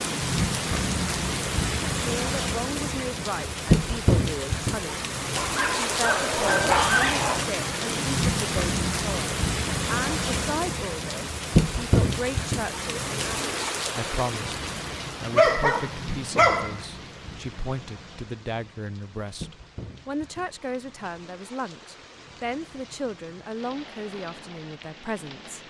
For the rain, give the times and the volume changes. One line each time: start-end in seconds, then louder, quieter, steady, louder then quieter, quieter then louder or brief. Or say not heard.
0.0-25.6 quieter.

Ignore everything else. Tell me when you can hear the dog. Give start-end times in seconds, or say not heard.
5.3-7.5, 15.3-16.8.